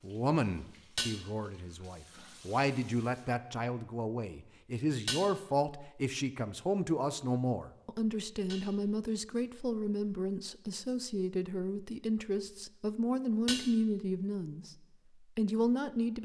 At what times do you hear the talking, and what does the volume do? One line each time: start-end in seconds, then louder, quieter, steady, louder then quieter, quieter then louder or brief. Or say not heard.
0.0-14.8 steady
15.3-16.2 brief.